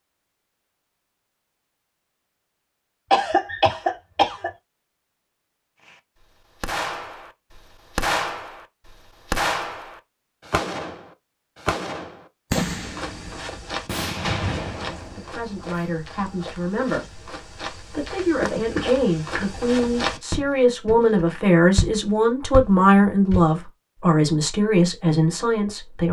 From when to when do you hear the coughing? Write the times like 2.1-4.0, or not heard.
3.1-4.5, 18.8-19.5.